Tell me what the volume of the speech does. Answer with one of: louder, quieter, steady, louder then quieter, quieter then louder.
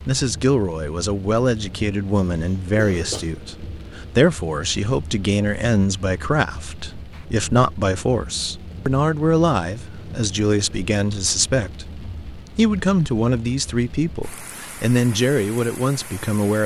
steady.